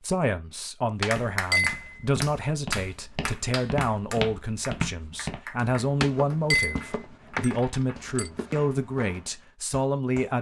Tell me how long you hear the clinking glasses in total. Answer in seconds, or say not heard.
3 s.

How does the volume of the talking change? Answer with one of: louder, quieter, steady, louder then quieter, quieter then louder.
steady.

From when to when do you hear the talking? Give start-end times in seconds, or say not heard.
0.0-10.3.